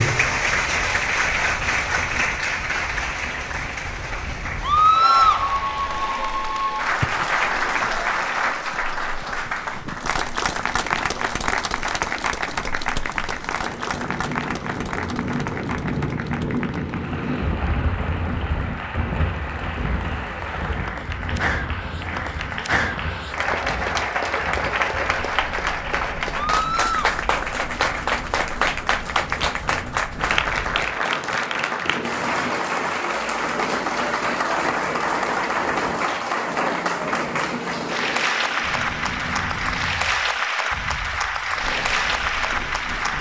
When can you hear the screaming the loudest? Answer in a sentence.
The volume of the screaming peaks at 5 seconds.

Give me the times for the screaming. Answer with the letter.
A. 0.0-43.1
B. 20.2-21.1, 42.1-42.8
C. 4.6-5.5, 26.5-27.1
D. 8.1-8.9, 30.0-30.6
C.